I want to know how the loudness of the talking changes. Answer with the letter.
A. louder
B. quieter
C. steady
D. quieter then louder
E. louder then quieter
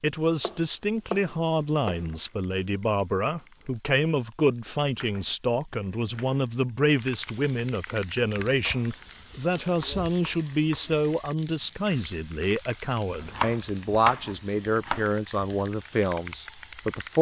C.